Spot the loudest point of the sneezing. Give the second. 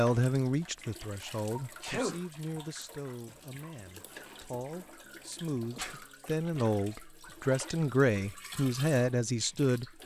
2 s.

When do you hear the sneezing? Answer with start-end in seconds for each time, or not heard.
1.8-2.2, 5.6-6.0.